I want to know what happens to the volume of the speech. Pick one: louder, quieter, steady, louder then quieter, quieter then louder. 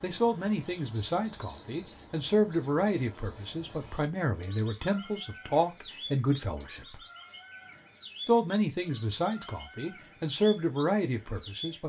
steady.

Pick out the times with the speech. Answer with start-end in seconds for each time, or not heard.
0.0-7.0, 8.2-11.8.